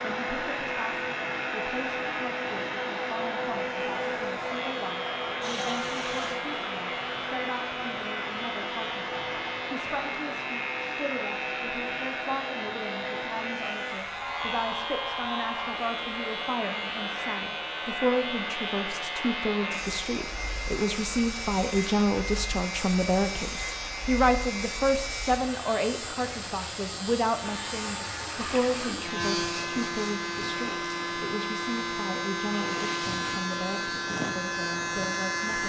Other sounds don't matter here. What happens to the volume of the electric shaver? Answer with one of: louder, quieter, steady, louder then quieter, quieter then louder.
louder.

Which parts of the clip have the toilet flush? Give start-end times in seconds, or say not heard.
5.4-6.4, 27.4-29.0.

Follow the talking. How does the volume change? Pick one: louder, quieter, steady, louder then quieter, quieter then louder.
louder then quieter.